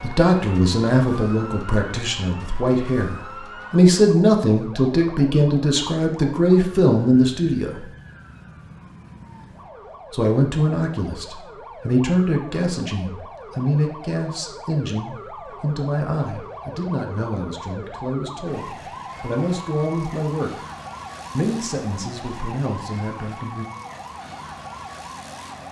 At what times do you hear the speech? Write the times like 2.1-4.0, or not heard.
0.0-7.9, 10.1-20.5, 21.3-23.6.